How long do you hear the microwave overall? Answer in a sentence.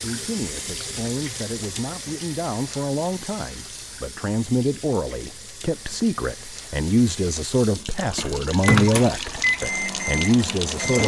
You can hear the microwave for 3 seconds altogether.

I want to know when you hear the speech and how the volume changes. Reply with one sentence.
The speech can be heard from 0.0 to 11.0 s, getting louder.